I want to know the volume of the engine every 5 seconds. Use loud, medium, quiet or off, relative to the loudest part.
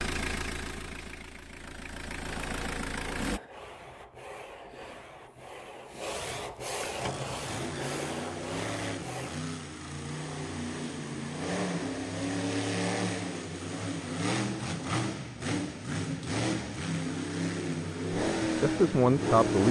medium, medium, loud, loud.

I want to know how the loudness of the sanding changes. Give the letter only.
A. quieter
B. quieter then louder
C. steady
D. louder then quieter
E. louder
E.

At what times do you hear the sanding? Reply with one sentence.
You can hear the sanding from 2.2 to 9.5 s.